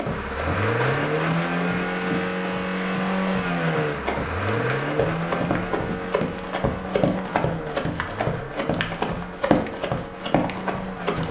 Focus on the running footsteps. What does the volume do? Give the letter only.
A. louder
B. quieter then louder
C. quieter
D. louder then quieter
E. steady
A.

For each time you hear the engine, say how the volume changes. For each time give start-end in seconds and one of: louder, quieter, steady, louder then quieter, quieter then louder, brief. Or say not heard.
0.0-11.2 quieter.